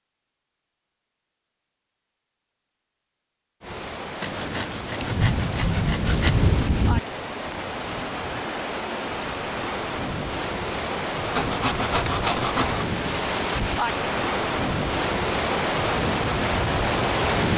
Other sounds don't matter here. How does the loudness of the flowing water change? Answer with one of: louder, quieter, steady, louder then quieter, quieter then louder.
louder.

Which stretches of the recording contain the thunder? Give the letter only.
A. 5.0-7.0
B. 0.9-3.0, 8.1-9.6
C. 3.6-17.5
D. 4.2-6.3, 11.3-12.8
A.